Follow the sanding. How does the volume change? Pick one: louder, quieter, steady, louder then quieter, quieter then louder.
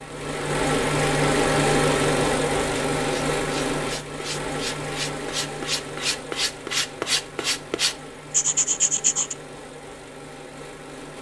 louder.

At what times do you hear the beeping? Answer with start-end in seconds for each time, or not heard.
not heard.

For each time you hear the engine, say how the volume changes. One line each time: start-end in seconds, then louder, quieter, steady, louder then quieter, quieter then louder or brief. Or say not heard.
0.0-11.1 quieter.